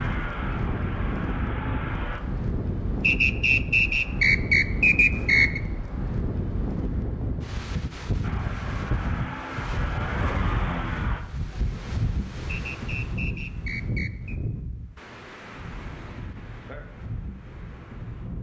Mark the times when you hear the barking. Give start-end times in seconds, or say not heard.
not heard.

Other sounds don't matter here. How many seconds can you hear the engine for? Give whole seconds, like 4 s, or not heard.
5 s.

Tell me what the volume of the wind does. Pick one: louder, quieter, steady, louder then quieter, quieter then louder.
quieter.